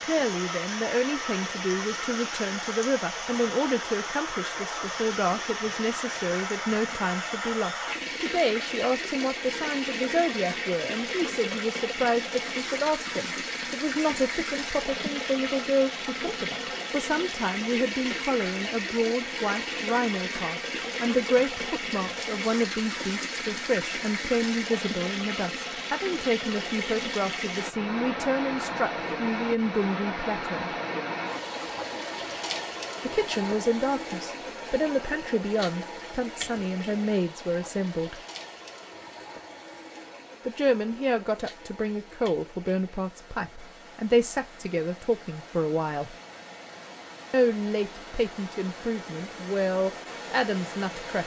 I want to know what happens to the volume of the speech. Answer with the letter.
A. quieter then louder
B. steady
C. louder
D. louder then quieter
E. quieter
B.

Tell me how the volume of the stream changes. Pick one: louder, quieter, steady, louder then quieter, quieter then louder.
quieter.